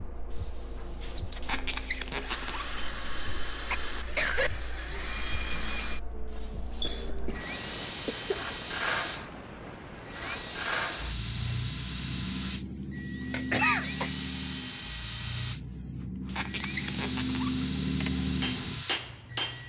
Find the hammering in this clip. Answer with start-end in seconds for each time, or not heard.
17.8-19.6.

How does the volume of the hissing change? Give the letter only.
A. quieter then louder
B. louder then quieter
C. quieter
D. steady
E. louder
E.